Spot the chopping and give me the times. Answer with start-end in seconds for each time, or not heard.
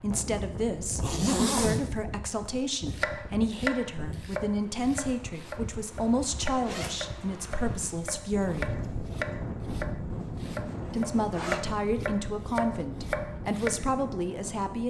2.9-13.7.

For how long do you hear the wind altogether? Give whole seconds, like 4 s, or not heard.
15 s.